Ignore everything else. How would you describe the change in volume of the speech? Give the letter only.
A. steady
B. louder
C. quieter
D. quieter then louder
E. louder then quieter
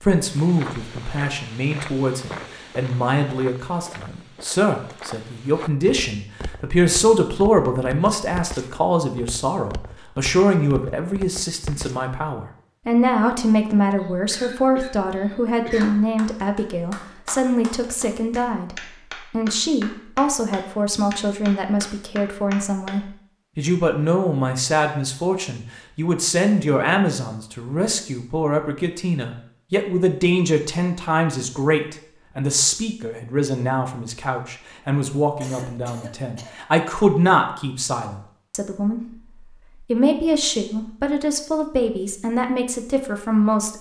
A.